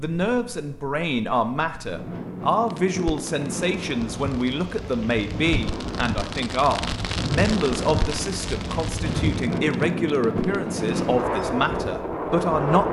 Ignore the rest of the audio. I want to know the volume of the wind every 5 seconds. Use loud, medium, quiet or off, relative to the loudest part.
medium, loud, loud.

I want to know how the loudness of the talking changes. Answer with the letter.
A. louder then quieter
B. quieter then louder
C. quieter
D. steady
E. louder
D.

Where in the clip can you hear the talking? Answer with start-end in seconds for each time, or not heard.
0.0-12.8.